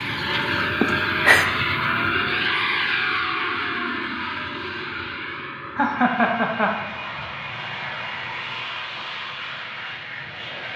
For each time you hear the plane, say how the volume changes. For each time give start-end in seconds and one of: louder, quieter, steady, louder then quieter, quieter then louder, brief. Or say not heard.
0.0-10.7 quieter.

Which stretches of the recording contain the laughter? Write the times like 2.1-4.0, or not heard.
0.8-1.5, 5.8-7.2.